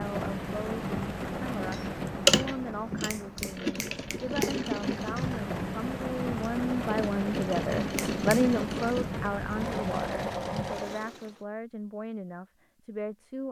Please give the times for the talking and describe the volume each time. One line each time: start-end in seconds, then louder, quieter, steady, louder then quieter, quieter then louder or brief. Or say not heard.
0.0-13.4 louder then quieter.